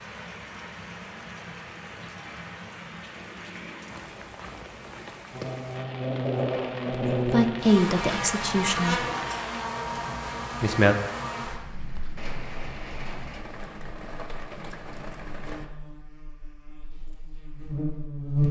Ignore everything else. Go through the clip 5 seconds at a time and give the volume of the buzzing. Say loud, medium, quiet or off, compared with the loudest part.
off, loud, medium, loud.